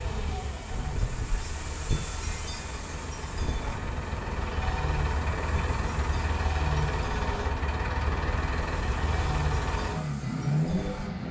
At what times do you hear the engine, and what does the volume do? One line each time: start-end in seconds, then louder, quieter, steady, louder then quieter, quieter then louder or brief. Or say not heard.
0.0-11.2 louder.